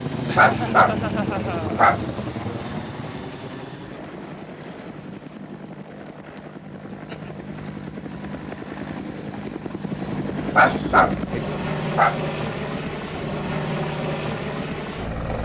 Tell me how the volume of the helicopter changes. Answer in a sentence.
The volume of the helicopter goes down, then up.